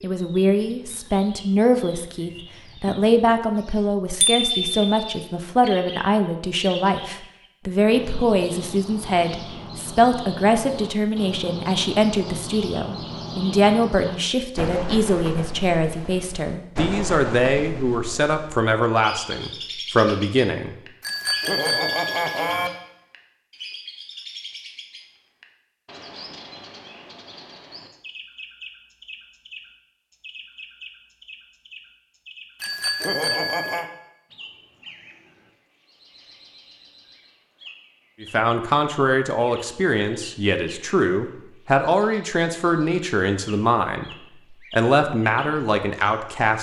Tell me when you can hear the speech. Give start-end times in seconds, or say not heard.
0.0-20.8, 38.2-44.1, 44.7-46.5.